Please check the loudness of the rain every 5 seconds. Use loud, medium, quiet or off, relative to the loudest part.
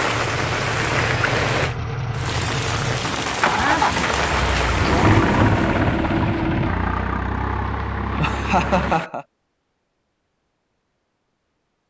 loud, medium, off.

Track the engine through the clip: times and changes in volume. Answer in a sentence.
You can hear the engine from 0.0 to 9.0 s, getting louder then quieter.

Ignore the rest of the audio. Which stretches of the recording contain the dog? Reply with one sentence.
The dog can't be heard in this clip.